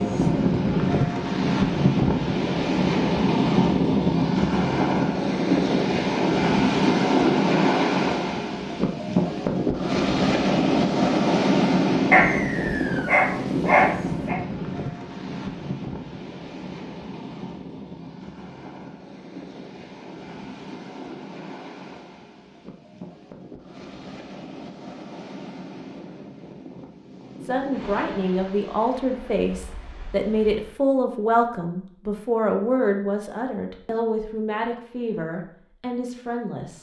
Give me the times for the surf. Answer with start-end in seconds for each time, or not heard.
0.0-30.8.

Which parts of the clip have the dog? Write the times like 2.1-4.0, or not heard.
12.1-14.3.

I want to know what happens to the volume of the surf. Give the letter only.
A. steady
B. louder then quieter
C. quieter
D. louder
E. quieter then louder
C.